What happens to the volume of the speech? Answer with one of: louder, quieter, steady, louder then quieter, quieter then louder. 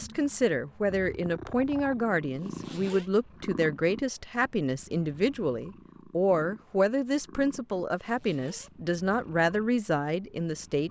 steady.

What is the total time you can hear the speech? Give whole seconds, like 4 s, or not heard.
11 s.